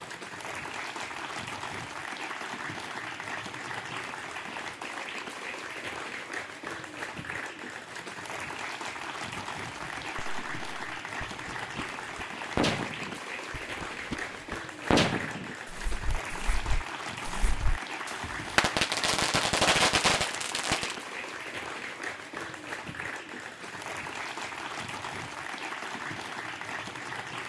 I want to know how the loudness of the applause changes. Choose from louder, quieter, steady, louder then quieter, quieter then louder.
steady.